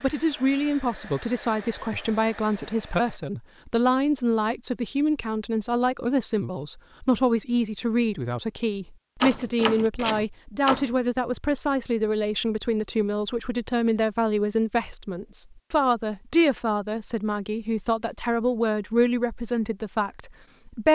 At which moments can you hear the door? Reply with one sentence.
The door can be heard from 9.2 to 10.9 s.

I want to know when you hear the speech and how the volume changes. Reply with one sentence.
The speech can be heard from 0.0 to 20.9 s, at a steady volume.